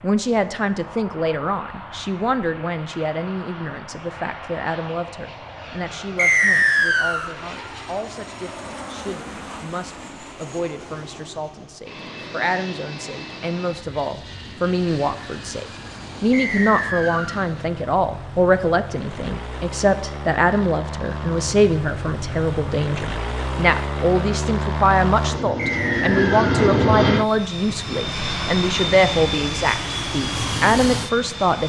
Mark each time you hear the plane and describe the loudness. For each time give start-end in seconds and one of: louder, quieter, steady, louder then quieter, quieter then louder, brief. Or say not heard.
0.0-31.6 louder.